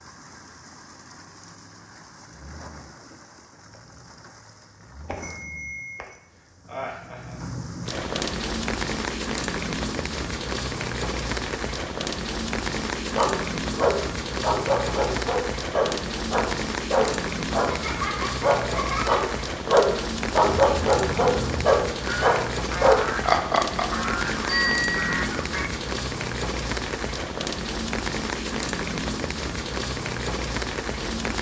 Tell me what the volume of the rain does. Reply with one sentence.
The volume of the rain goes up.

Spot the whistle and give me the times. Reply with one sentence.
You can't hear the whistle here.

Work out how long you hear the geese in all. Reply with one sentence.
You can hear the geese for 5 seconds altogether.